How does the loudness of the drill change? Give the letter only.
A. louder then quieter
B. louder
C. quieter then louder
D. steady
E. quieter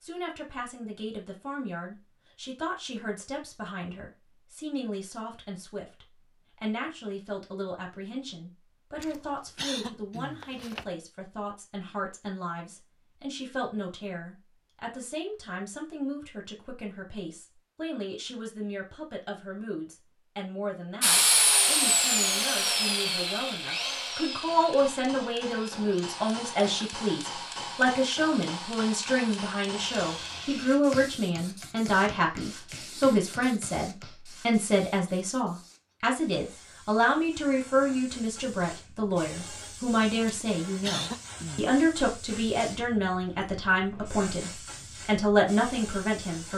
E.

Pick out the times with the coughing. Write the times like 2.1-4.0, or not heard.
9.0-10.8, 40.2-41.8.